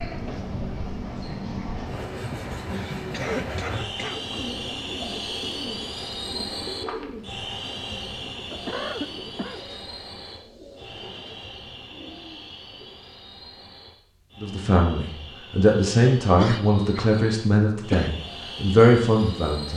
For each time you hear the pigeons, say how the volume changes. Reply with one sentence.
You can hear the pigeons from 4.0 to 12.9 s, getting quieter.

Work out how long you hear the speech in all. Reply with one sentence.
You can hear the speech for 5 seconds altogether.